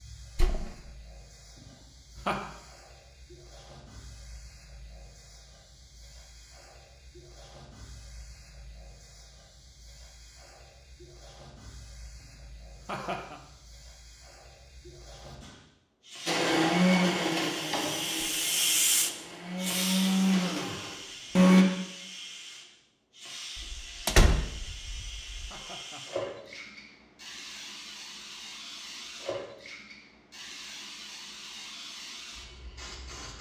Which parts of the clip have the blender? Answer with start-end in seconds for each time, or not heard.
16.2-21.6.